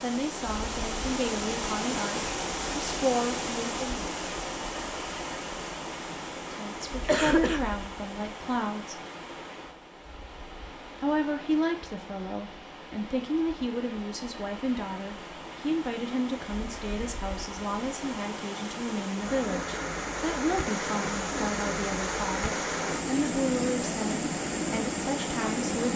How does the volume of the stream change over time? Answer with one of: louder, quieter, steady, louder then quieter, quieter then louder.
quieter then louder.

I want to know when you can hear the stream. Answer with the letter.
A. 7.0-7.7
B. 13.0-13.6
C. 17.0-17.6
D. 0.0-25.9
D.